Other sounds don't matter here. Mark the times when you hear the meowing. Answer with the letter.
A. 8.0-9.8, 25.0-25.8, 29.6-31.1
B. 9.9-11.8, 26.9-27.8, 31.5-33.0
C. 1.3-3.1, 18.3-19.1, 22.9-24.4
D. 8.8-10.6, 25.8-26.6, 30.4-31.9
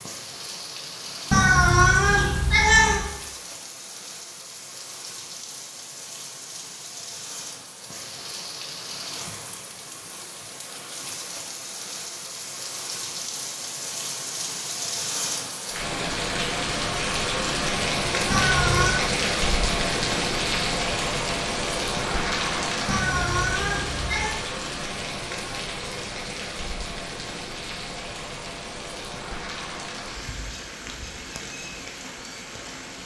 C.